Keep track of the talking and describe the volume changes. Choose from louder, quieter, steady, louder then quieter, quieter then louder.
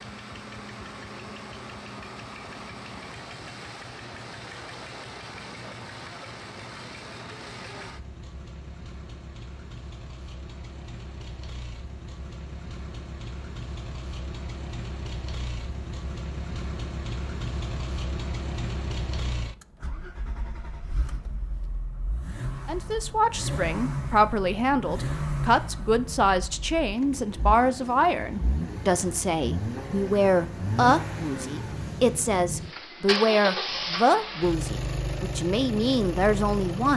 steady.